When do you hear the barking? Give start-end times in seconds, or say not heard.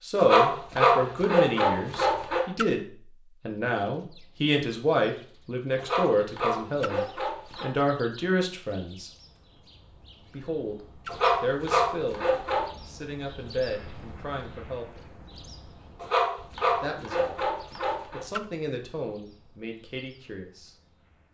0.1-2.5, 5.8-7.7, 11.1-12.7, 16.0-18.2.